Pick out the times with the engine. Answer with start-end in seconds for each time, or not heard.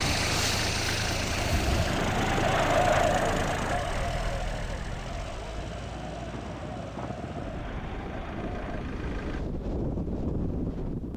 0.0-9.4.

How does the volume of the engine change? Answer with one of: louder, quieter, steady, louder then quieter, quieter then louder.
quieter.